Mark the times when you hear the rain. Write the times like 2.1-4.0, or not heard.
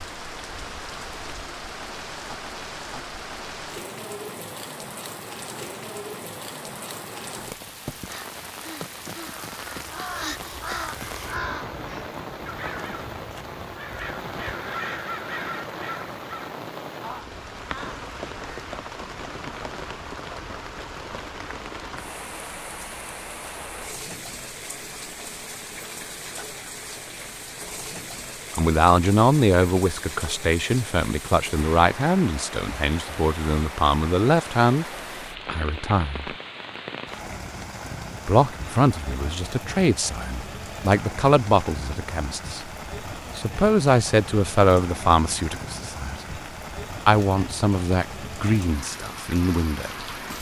0.0-50.3.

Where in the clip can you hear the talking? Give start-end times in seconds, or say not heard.
28.6-34.9, 35.5-36.4, 38.2-42.7, 43.4-46.2, 47.0-50.0.